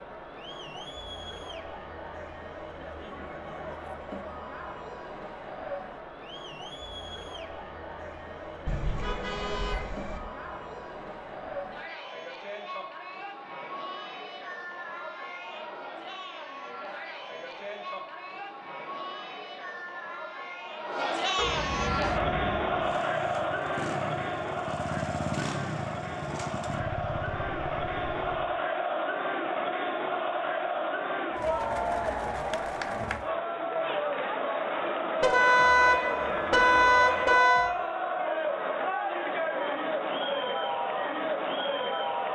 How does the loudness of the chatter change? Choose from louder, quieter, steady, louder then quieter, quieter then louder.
louder.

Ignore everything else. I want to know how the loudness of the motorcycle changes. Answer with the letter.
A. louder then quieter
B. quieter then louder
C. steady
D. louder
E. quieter
A.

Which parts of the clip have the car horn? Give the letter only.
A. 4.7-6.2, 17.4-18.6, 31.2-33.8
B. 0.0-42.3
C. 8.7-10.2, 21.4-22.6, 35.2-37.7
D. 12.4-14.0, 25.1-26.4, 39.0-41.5
C.